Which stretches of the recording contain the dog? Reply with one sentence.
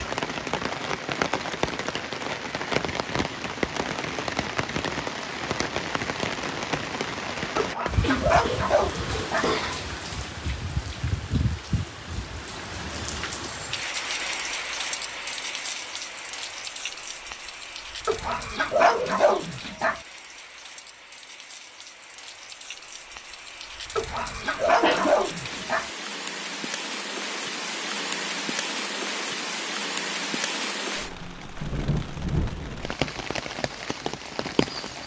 The dog can be heard from 7.5 to 9.5 s, from 18.1 to 20.0 s and from 23.9 to 25.9 s.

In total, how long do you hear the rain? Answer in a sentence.
The rain can be heard for 35 seconds in total.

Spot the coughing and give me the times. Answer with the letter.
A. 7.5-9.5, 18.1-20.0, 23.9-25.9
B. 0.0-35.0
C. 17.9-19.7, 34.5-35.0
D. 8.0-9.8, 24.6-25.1
D.